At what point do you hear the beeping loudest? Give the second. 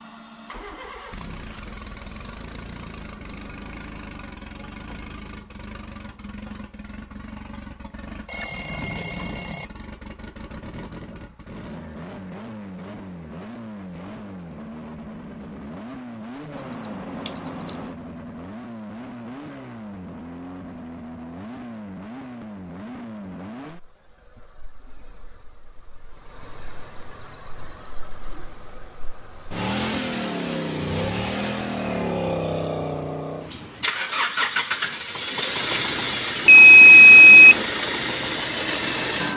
37 s.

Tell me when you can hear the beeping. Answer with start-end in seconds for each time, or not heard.
8.2-9.7, 16.5-17.8, 36.5-37.6.